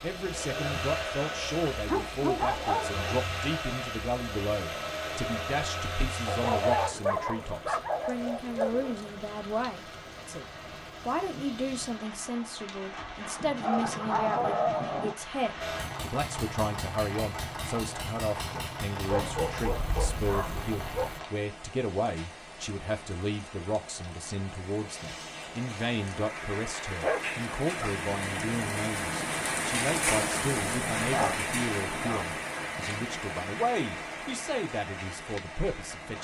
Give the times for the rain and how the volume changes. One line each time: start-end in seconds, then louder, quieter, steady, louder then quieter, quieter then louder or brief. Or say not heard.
0.0-36.1 louder.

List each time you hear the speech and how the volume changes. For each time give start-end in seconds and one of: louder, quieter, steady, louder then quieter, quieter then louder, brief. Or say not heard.
0.0-10.4 steady
11.1-36.1 steady.